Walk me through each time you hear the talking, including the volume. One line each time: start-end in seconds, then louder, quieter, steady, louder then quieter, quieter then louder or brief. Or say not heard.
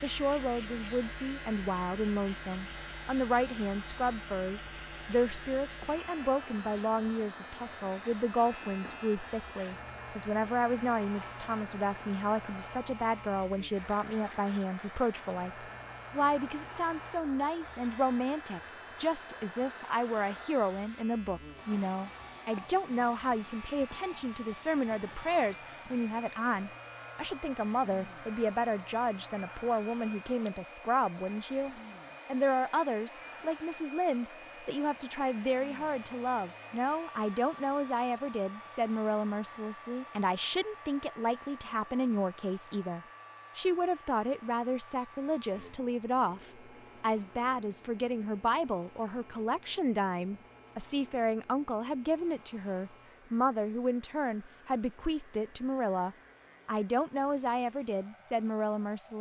0.0-59.1 steady.